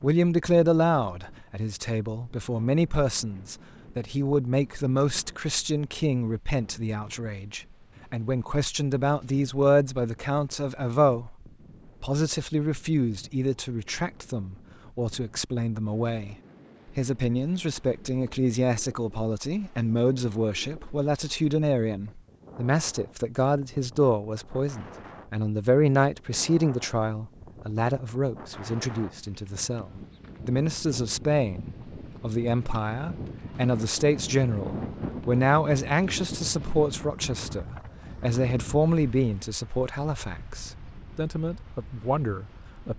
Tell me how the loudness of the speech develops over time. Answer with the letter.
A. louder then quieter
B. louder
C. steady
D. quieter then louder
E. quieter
C.